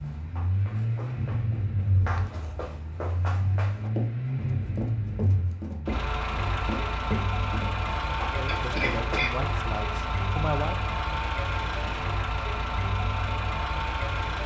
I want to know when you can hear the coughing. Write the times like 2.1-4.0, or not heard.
8.4-9.3.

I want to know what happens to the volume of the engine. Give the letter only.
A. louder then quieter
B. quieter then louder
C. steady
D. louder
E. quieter
C.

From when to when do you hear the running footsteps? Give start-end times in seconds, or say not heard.
0.0-9.2.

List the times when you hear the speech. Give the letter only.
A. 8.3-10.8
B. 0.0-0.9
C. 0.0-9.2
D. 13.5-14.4
A.